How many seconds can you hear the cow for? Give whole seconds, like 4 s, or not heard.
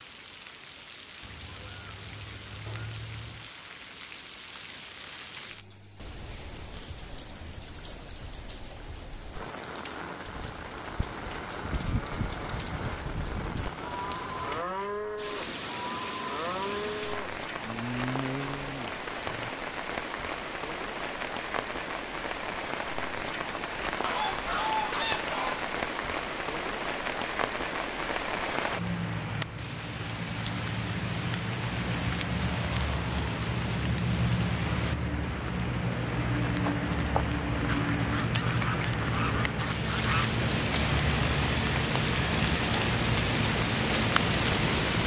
9 s.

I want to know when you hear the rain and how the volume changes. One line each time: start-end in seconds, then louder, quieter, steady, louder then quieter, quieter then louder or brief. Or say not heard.
0.0-45.0 louder.